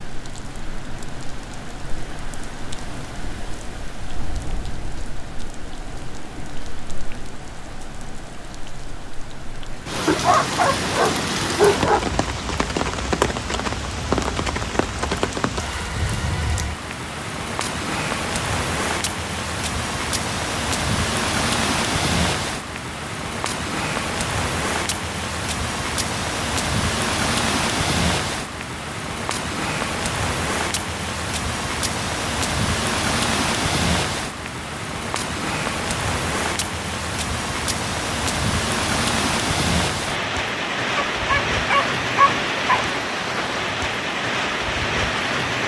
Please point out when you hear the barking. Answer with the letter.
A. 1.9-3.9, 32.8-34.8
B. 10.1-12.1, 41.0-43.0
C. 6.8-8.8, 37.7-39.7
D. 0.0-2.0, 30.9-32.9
B.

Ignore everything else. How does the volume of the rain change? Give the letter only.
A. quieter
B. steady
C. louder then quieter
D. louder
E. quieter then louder
D.